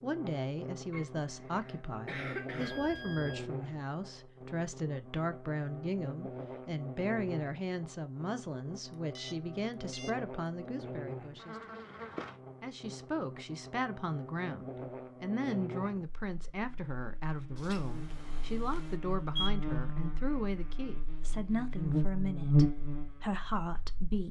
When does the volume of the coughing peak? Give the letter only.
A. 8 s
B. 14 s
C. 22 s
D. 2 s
D.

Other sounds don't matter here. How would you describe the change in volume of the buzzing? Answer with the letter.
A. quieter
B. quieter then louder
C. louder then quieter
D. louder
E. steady
D.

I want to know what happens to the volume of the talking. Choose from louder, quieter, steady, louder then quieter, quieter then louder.
steady.